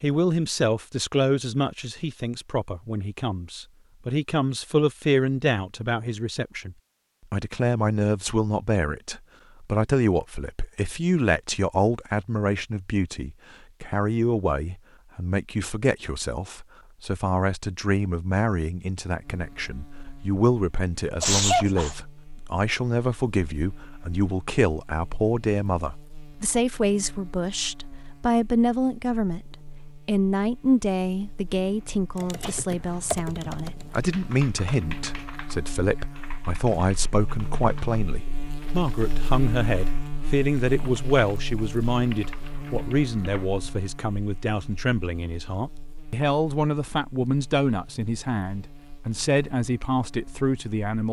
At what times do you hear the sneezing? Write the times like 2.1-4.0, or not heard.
21.2-21.9, 31.7-32.6.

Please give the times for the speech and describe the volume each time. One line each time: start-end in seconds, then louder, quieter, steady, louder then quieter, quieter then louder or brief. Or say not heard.
0.0-51.0 steady.